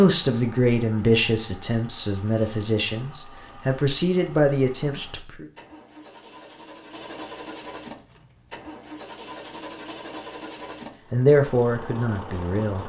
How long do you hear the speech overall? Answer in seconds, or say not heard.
7 s.